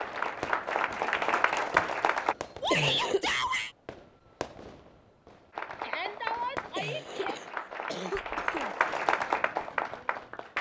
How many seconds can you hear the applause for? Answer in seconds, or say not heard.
7 s.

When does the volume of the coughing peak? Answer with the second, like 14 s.
3 s.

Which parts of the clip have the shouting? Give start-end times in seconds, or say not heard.
2.6-3.8, 5.8-7.4.